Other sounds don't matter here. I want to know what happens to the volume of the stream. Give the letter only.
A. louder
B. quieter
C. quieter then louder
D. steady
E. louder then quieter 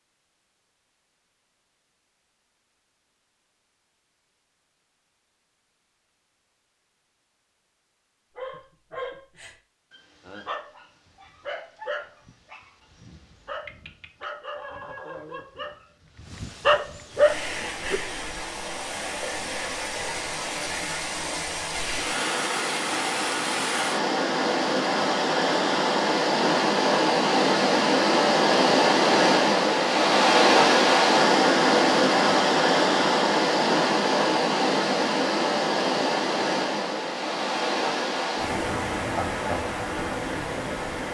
E.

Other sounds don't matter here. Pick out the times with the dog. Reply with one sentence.
The dog can be heard from 8.3 to 18.0 s.